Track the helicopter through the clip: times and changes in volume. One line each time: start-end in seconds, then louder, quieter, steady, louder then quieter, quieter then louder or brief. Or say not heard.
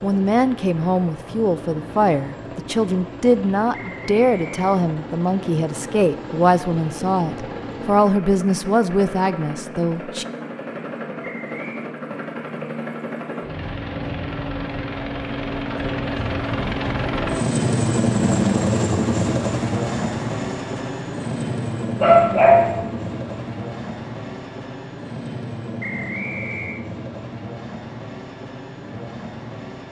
0.0-29.8 louder then quieter.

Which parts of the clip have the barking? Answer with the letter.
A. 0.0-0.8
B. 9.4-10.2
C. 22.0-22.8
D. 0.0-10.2
C.